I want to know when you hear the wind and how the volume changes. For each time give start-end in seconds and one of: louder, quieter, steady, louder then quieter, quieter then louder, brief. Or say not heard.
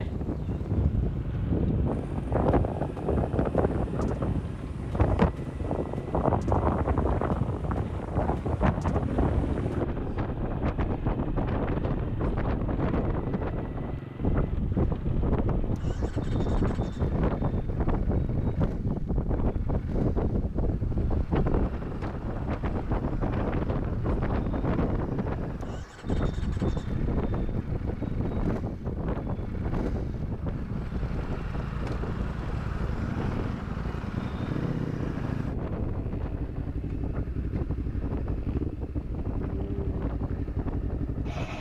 0.0-41.5 quieter.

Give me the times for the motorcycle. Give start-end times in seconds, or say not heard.
0.0-41.5.